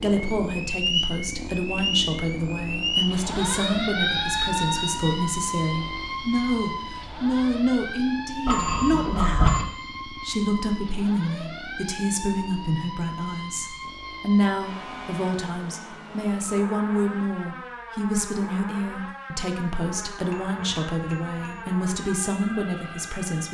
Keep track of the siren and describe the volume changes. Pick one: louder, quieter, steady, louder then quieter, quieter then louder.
quieter.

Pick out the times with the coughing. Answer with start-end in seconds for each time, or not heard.
not heard.